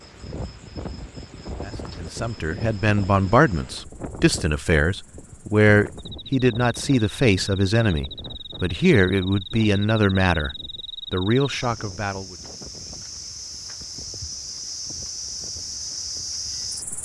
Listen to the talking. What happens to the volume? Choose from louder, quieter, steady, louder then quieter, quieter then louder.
steady.